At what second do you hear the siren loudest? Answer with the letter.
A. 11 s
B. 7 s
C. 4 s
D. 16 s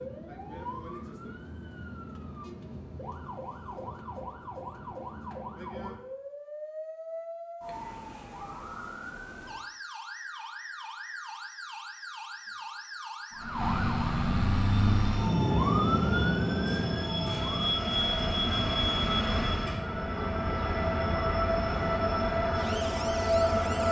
D.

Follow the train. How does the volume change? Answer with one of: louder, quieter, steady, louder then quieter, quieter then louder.
louder.